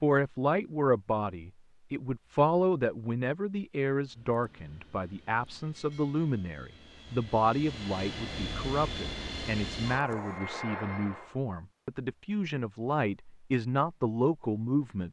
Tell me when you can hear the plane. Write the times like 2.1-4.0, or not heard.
4.0-11.3.